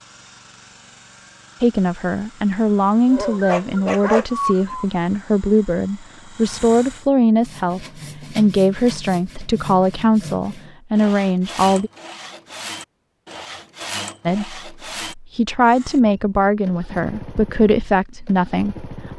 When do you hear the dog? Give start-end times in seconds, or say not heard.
3.0-4.8.